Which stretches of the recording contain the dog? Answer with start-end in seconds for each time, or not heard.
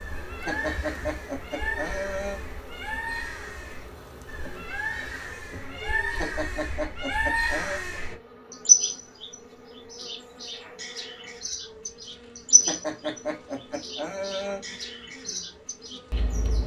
not heard.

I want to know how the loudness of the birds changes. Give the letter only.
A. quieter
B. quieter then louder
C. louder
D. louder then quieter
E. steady
D.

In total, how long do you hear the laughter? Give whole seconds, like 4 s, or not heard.
6 s.